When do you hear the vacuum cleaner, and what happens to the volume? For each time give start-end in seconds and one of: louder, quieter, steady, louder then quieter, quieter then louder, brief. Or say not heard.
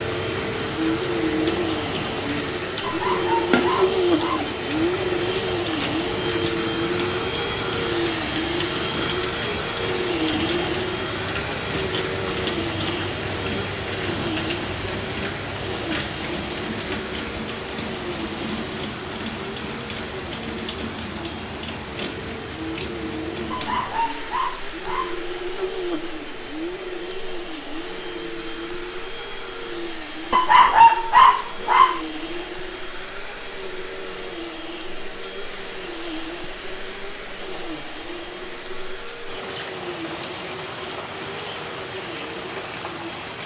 0.0-43.4 quieter.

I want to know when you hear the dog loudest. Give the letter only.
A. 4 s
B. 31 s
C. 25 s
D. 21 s
B.